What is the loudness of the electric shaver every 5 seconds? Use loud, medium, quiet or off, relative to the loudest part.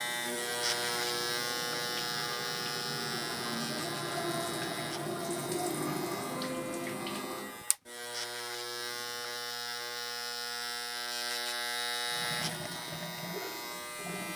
loud, medium, loud.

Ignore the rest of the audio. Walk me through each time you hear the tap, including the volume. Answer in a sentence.
The tap can be heard from 0.0 to 7.7 s, getting louder; and briefly from 12.1 to 14.3 s.